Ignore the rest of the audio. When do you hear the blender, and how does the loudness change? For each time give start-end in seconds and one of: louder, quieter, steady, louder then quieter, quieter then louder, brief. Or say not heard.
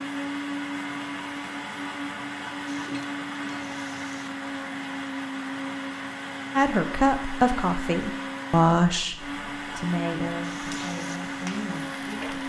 0.0-12.4 steady.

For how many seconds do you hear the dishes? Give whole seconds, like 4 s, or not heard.
not heard.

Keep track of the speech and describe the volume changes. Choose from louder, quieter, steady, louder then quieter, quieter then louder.
quieter.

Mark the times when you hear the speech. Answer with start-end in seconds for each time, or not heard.
6.5-12.4.